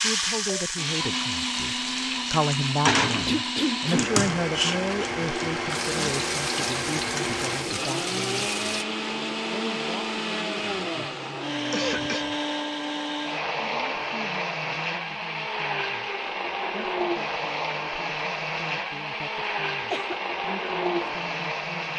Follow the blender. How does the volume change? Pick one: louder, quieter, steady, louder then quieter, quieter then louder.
steady.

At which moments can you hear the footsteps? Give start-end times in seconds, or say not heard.
not heard.